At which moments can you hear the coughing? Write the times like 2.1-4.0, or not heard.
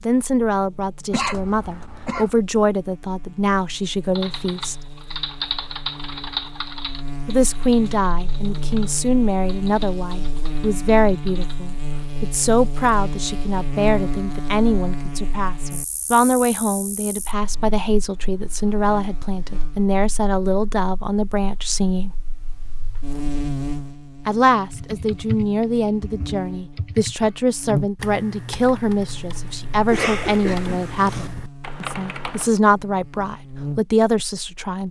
1.1-2.3, 29.9-31.3.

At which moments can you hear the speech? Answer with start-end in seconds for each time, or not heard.
0.1-4.8, 7.2-22.1, 24.2-34.8.